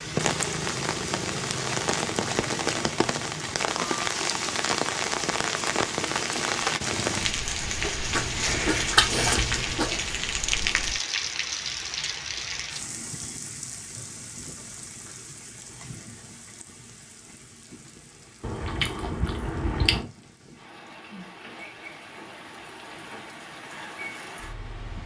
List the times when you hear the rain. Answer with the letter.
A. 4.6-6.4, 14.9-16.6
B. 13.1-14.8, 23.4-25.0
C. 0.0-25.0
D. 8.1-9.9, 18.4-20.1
C.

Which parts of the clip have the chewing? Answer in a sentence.
You can hear the chewing from 8.1 to 9.9 s and from 18.4 to 20.1 s.